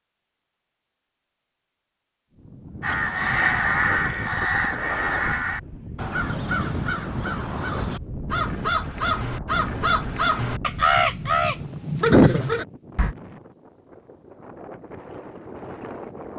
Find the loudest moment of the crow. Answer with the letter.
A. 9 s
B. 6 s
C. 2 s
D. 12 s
D.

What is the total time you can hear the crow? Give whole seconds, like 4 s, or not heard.
10 s.